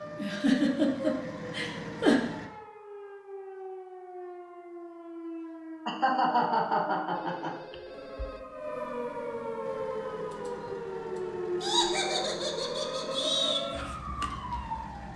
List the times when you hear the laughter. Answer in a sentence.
You can hear the laughter from 0.1 to 2.1 s, from 5.8 to 7.5 s and from 11.6 to 13.6 s.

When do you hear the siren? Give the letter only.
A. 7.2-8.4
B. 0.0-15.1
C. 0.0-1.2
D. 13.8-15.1
B.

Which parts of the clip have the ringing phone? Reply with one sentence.
The ringing phone can be heard from 7.2 to 8.4 s.